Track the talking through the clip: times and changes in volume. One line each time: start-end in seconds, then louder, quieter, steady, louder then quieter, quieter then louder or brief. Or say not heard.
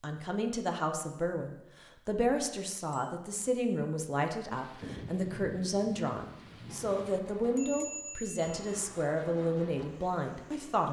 0.0-10.8 steady.